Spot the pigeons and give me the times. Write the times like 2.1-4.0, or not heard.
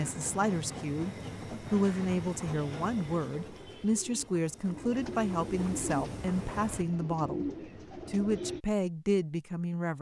2.5-8.6.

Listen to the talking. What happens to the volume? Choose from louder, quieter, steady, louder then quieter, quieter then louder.
steady.